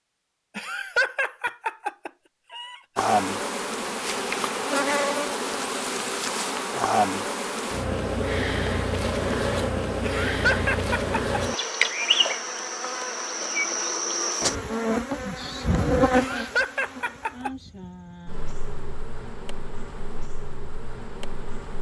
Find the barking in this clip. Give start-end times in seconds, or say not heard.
not heard.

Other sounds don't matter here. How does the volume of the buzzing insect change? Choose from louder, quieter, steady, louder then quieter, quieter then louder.
quieter.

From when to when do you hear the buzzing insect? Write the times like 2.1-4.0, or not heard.
3.0-21.7.